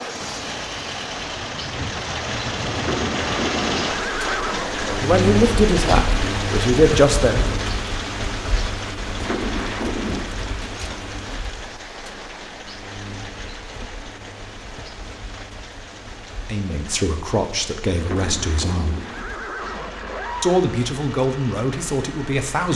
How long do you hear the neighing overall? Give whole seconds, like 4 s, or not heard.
6 s.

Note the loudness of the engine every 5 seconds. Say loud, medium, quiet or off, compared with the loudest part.
loud, loud, medium, quiet, medium.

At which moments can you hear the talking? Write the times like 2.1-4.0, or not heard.
5.0-7.6, 16.4-18.9, 20.4-22.7.